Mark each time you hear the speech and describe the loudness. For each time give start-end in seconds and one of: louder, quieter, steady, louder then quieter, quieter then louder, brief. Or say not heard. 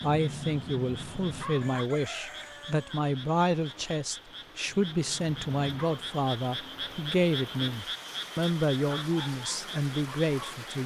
0.0-10.8 steady.